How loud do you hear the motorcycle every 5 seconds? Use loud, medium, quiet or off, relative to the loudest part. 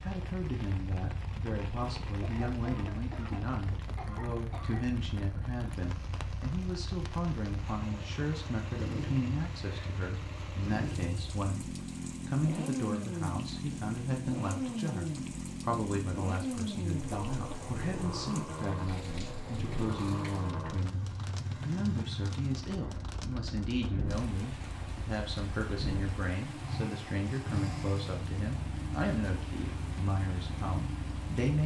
medium, medium, loud, loud, loud, loud, loud.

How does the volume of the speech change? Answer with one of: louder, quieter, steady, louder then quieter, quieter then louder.
steady.